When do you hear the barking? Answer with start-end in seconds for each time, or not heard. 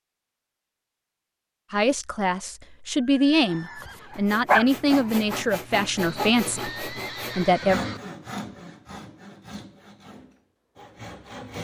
3.5-5.3.